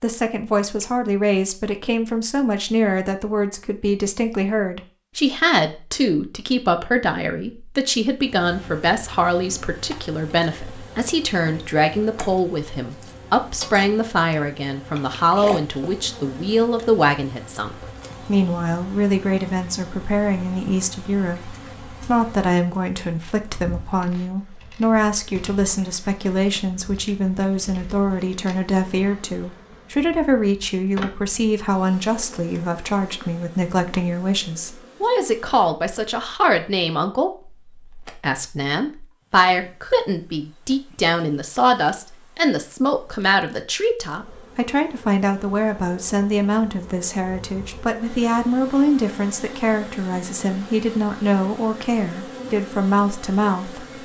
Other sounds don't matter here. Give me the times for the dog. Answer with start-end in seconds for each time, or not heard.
not heard.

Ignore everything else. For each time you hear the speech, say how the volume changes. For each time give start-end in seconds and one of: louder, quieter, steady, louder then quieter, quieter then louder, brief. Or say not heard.
0.0-54.0 steady.